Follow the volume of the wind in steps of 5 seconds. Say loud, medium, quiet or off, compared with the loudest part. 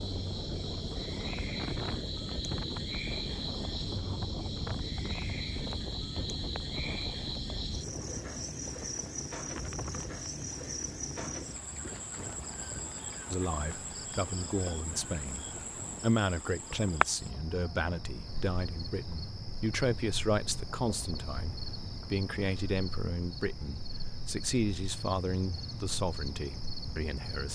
loud, loud, medium, medium, off, off.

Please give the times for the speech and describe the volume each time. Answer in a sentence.
The speech can be heard from 13.3 to 27.4 s, at a steady volume.